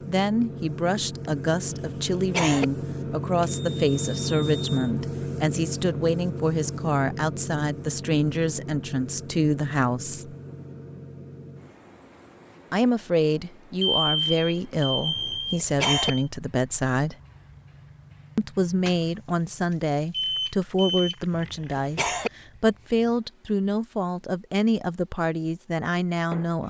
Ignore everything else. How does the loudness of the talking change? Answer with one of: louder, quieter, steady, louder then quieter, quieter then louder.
steady.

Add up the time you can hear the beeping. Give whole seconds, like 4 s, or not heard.
5 s.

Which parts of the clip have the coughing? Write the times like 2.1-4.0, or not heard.
1.7-2.6, 15.2-16.1, 21.3-22.3.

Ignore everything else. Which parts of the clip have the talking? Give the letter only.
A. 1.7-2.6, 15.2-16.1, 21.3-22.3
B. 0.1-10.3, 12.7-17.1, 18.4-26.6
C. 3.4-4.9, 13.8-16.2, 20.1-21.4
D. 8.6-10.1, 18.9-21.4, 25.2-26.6
B.